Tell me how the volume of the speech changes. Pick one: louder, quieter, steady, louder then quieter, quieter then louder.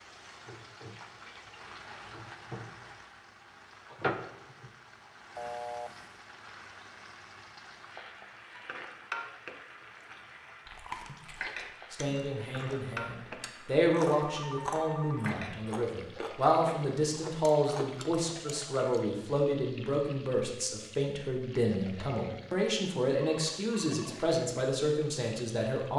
steady.